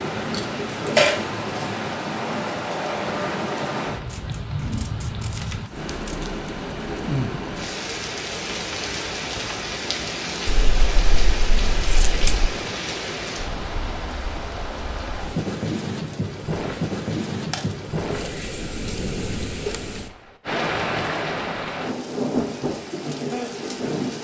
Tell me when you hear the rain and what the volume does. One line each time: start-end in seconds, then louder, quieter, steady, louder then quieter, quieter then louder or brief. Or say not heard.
0.0-24.2 steady.